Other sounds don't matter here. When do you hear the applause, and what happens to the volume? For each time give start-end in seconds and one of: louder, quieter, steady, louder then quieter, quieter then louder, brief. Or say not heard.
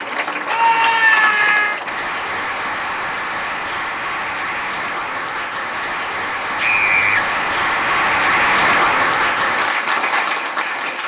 0.0-11.0 louder.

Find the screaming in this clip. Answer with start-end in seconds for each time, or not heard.
0.5-1.8, 6.5-7.2.